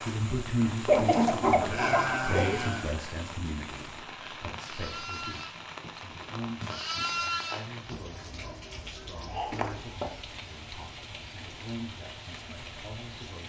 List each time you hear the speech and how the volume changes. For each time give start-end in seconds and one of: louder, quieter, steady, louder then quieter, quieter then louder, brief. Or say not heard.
0.0-13.4 quieter.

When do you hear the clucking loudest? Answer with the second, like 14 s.
1 s.